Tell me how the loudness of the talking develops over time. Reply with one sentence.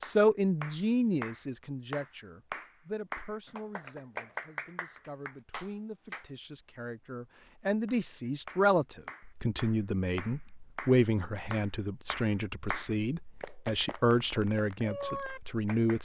The volume of the talking goes down, then up.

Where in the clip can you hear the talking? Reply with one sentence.
You can hear the talking from 0.0 to 15.9 s.